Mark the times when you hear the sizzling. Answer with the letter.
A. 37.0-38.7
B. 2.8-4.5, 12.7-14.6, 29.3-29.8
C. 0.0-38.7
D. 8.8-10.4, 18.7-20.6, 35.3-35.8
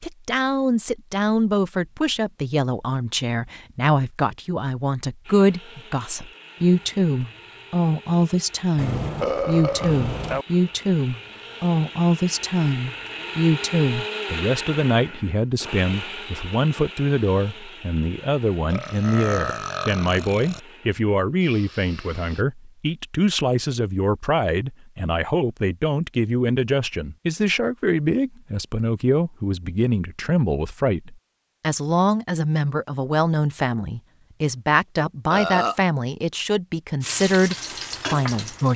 A.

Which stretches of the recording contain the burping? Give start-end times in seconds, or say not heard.
8.8-10.4, 18.7-20.6, 35.3-35.8.